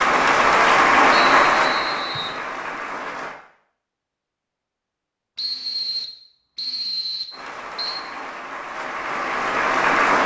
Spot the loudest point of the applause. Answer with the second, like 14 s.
1 s.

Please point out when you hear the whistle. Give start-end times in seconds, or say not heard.
1.1-2.4, 5.3-8.0.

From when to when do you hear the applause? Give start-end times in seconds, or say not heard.
0.0-3.4, 7.3-10.2.